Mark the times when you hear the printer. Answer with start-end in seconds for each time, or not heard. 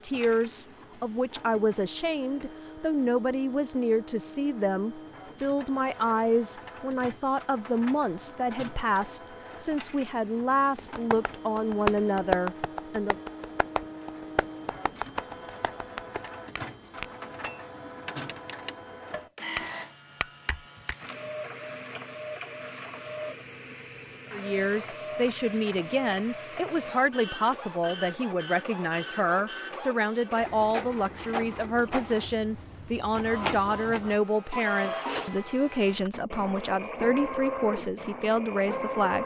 0.0-39.2.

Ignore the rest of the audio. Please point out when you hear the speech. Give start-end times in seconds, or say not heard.
0.0-13.2, 24.3-39.2.